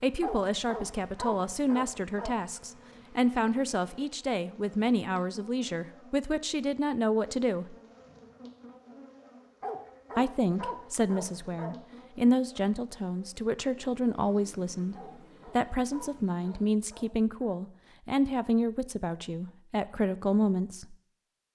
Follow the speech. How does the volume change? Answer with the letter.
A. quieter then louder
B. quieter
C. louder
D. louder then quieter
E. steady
E.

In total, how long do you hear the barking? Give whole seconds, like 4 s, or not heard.
7 s.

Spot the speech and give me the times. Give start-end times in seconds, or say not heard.
0.0-7.8, 10.2-20.9.